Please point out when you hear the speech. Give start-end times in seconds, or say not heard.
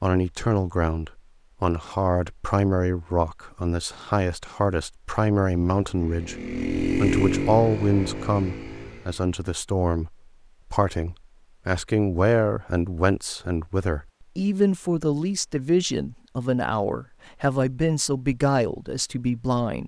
0.0-6.3, 7.0-19.8.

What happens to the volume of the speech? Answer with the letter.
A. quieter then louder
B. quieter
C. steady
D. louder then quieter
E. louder
C.